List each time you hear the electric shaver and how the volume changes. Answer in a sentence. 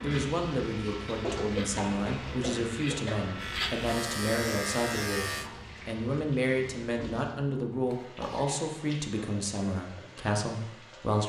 The electric shaver can be heard from 0.0 to 5.5 s, getting louder.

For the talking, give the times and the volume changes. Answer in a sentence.
You can hear the talking from 0.0 to 11.2 s, at a steady volume.